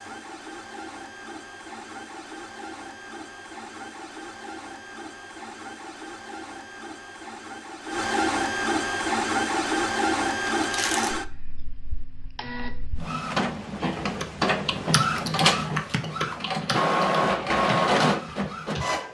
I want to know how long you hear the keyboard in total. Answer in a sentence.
You can hear the keyboard for 5 seconds altogether.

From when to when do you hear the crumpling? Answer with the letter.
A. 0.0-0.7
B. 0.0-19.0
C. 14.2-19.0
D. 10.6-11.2
D.